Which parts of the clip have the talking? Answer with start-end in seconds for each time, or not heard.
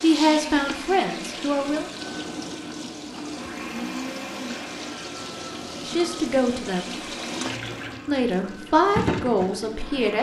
0.0-1.9, 5.8-6.8, 8.1-10.1.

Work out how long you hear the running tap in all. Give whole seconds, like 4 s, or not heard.
10 s.